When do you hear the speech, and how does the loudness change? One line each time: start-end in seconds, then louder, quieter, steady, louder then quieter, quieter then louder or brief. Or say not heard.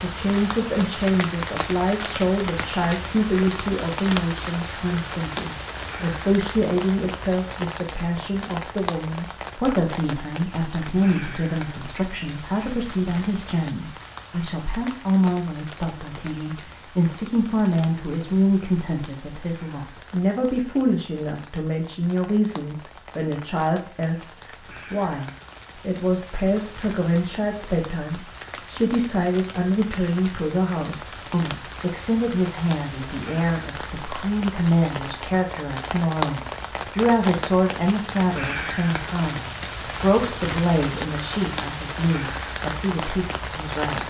0.0-44.0 steady.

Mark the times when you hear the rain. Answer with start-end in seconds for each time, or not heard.
0.0-44.0.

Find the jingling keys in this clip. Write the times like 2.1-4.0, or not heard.
not heard.